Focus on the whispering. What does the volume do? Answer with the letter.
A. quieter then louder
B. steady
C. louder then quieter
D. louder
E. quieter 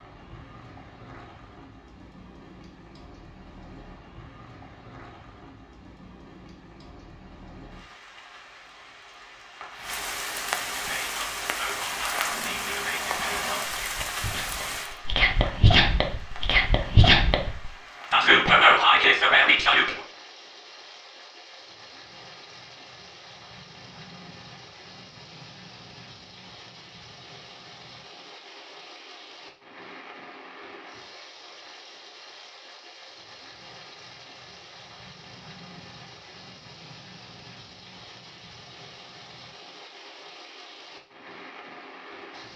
D.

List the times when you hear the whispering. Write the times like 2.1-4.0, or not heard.
10.7-19.9.